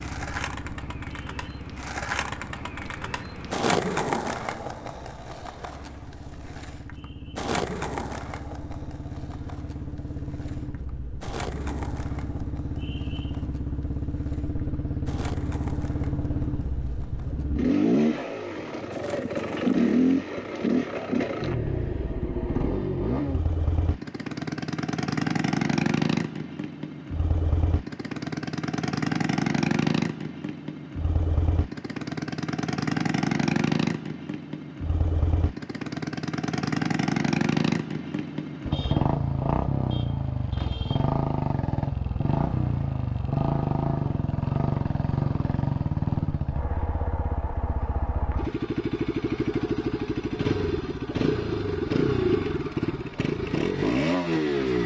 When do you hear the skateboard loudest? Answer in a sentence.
The loudest moment of the skateboard is at 4 seconds.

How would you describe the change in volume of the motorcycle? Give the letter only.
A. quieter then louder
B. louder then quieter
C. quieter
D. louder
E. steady
D.